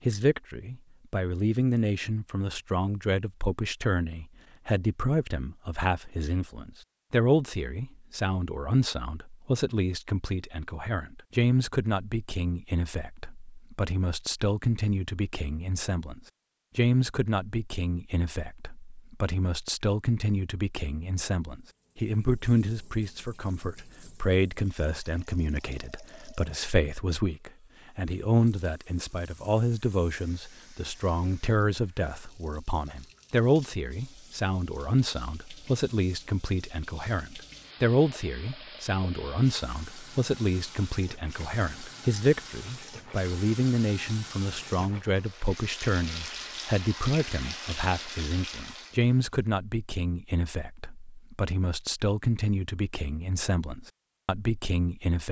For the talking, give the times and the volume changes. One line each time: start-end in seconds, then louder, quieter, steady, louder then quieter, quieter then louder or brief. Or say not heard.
0.1-55.2 steady.